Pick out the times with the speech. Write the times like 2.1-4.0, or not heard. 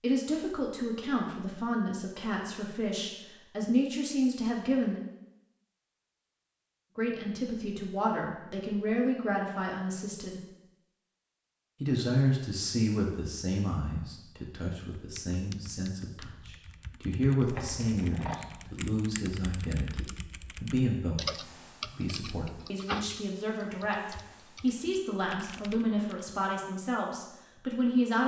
0.0-5.0, 7.0-10.4, 11.8-28.2.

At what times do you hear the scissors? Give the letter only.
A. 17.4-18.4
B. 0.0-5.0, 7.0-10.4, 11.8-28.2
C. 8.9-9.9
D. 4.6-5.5
A.